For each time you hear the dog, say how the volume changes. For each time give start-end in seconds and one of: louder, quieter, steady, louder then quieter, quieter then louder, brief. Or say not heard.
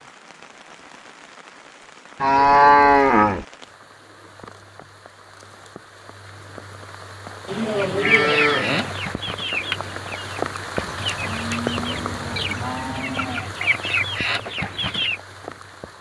not heard.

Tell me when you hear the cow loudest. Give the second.
3 s.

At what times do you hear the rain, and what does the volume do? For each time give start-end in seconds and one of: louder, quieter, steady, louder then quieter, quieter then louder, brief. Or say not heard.
0.0-15.9 louder then quieter.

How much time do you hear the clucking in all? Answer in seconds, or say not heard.
7 s.